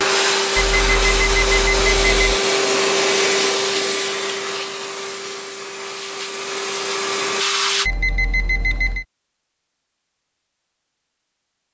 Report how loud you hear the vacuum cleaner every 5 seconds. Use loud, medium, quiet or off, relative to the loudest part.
loud, medium, off.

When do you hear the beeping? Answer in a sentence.
The beeping can be heard from 0.6 to 2.4 s and from 7.8 to 9.1 s.